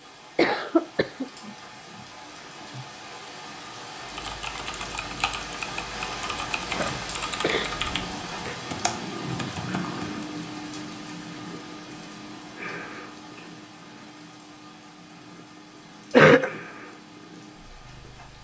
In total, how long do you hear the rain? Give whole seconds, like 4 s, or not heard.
18 s.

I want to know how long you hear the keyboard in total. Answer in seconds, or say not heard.
6 s.